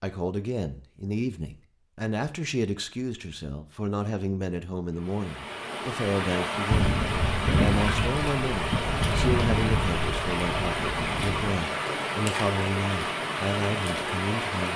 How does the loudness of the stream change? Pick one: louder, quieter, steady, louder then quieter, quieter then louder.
steady.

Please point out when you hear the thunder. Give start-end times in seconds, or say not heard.
6.7-11.6.